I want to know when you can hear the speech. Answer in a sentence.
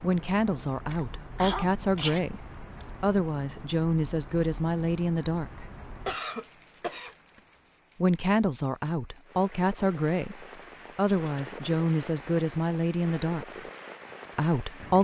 You can hear the speech from 0.0 to 5.7 s, from 8.0 to 13.6 s and from 14.3 to 14.9 s.